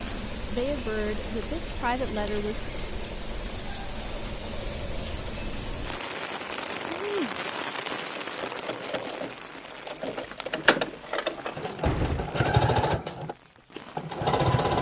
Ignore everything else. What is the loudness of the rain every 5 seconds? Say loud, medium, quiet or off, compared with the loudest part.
loud, loud, quiet.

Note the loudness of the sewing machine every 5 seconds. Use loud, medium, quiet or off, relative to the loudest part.
quiet, quiet, loud.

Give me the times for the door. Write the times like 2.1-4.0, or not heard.
11.0-12.3.